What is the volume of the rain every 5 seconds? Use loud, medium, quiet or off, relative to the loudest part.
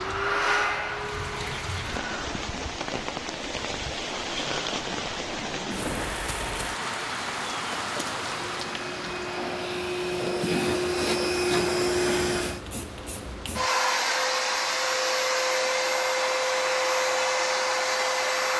loud, loud, quiet, quiet.